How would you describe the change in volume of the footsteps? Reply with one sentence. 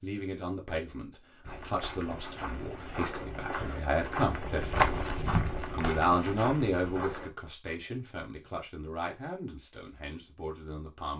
The volume of the footsteps goes up, then down.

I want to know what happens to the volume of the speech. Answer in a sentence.
The volume of the speech goes up, then down.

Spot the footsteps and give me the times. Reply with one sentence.
You can hear the footsteps from 1.4 to 7.3 s.